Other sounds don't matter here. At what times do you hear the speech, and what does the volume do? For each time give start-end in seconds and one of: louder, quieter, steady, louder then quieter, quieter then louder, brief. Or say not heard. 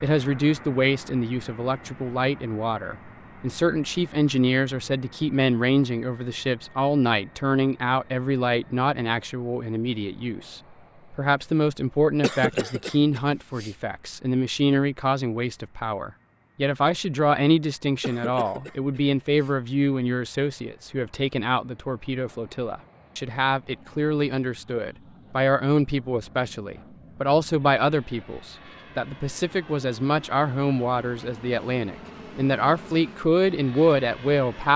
0.0-34.7 steady.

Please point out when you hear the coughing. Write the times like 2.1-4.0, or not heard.
12.2-13.7, 18.0-19.6.